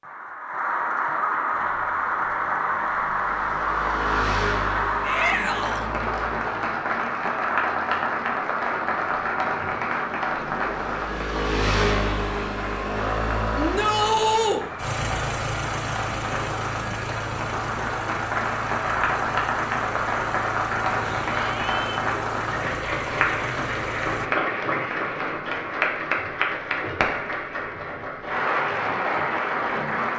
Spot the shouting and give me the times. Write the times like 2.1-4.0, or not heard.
5.0-5.9, 13.6-14.6, 21.1-22.1.